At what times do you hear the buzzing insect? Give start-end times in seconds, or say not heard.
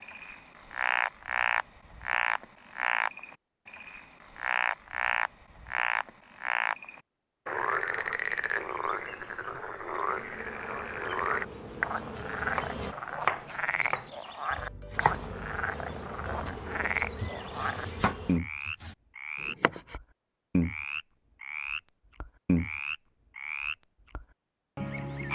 10.1-12.9, 14.9-18.4.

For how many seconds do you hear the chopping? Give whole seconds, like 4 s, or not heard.
8 s.